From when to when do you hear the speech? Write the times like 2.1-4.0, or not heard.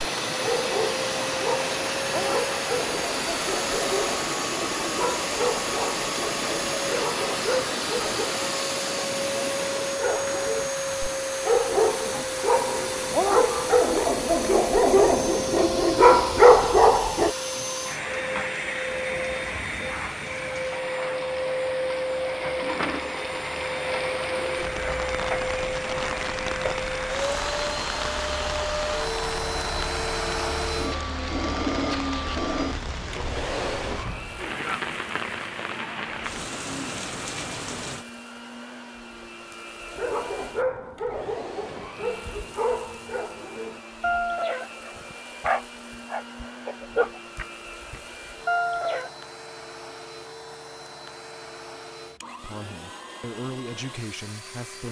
52.4-54.8.